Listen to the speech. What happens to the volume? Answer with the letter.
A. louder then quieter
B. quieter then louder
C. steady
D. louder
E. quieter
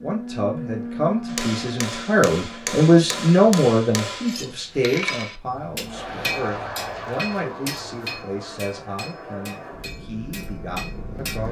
A.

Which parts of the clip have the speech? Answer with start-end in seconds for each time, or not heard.
0.0-11.4.